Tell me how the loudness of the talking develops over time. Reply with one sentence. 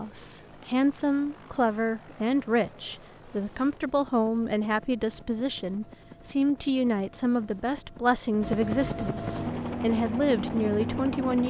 The loudness of the talking stays about the same.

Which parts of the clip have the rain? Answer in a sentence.
You can't hear the rain here.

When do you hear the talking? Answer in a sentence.
The talking can be heard from 0.0 to 11.4 s.